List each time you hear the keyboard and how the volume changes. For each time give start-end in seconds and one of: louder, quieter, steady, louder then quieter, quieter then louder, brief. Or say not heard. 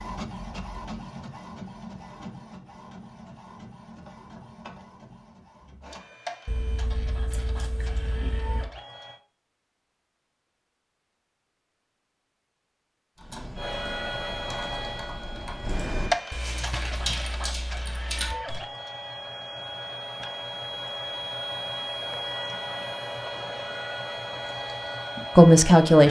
13.2-18.6 louder.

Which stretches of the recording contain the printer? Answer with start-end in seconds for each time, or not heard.
0.0-9.2, 13.6-26.0.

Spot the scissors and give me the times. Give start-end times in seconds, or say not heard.
6.5-8.7, 16.4-17.2.